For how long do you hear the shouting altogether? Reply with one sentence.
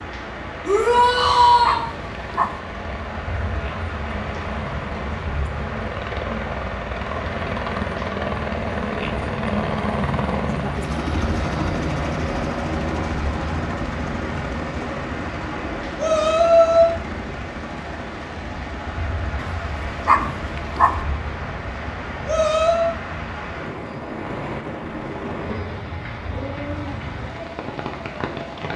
You can hear the shouting for 3 seconds altogether.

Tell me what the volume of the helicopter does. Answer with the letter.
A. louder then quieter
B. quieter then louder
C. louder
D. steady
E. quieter
A.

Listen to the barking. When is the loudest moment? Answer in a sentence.
The loudest moment of the barking is at 20 seconds.